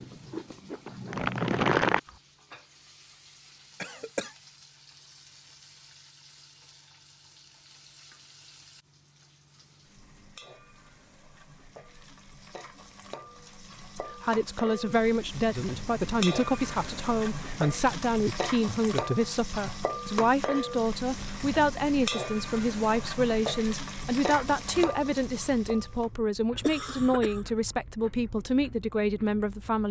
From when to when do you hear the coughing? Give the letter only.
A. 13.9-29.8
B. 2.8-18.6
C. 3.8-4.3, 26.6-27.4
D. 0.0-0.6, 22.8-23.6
C.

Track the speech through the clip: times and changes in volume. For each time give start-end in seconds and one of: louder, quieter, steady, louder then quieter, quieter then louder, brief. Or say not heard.
13.9-29.8 steady.